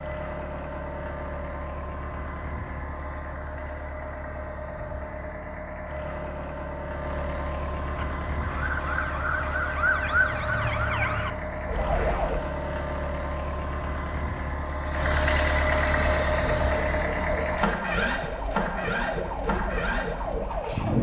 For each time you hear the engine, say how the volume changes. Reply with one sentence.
The engine can be heard from 0.0 to 20.9 s, getting louder.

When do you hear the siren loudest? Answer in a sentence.
The loudest moment of the siren is at 10 seconds.